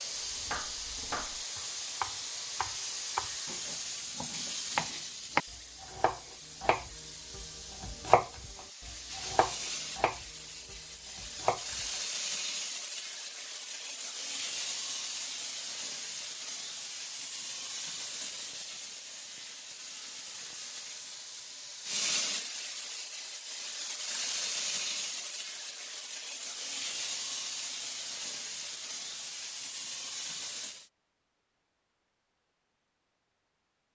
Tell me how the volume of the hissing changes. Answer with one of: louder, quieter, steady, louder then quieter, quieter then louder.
steady.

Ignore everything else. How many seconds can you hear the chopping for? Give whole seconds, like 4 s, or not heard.
12 s.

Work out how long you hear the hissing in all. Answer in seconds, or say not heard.
31 s.